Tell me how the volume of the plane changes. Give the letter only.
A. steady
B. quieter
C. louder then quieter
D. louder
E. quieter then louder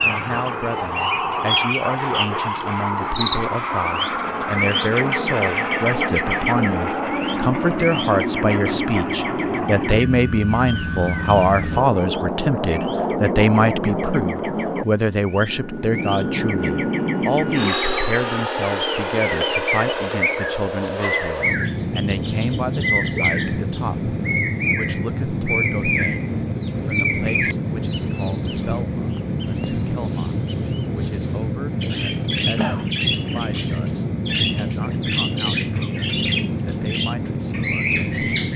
A.